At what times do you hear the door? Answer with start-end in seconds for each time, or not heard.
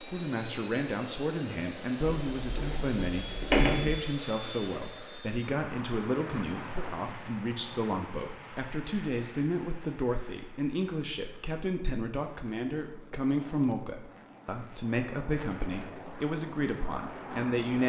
2.0-4.0.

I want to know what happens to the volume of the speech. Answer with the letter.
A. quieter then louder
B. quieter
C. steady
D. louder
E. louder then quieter
C.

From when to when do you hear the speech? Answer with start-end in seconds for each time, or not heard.
0.0-17.8.